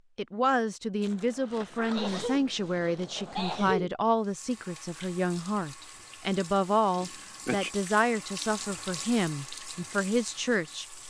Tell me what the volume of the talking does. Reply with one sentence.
The loudness of the talking stays about the same.